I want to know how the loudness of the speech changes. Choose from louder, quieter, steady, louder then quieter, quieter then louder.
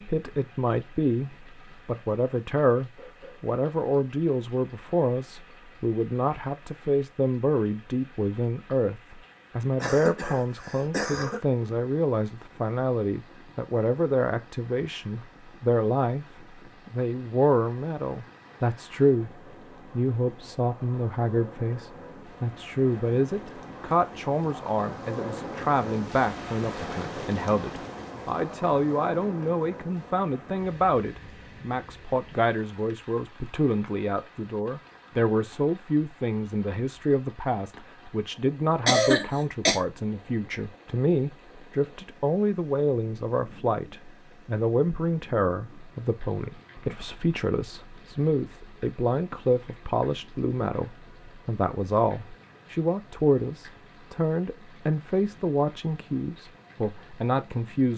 steady.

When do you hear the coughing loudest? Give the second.
39 s.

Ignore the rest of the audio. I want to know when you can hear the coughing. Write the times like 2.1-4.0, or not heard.
9.8-11.4, 38.9-39.8.